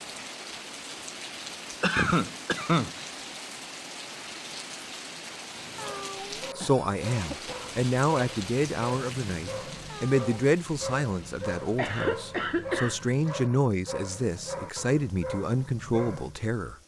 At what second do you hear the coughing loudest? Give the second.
2 s.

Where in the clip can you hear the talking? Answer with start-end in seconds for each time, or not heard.
6.5-16.8.